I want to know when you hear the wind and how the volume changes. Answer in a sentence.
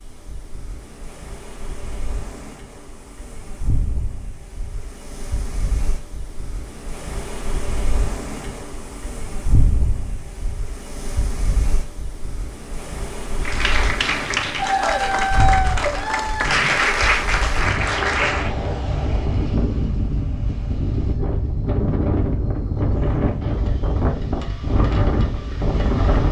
You can hear the wind from 0.0 to 26.2 s, getting louder.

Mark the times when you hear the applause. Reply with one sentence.
The applause can be heard from 13.4 to 18.6 s.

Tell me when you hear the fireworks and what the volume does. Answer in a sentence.
You can't hear the fireworks here.